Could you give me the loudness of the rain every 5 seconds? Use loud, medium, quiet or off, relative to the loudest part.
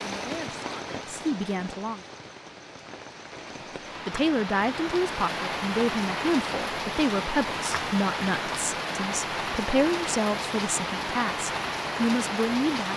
medium, loud, loud.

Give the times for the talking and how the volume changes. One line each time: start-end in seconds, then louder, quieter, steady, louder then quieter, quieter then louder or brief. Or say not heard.
0.0-2.0 brief
4.0-12.9 steady.